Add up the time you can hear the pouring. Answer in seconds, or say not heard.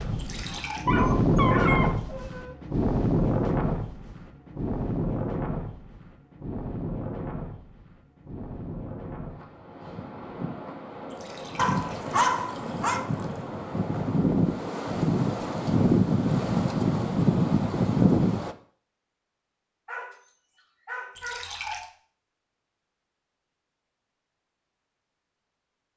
4 s.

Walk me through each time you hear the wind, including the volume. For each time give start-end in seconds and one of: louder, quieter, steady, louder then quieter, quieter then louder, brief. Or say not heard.
0.0-18.6 quieter then louder.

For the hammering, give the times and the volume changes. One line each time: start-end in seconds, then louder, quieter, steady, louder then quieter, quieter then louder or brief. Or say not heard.
not heard.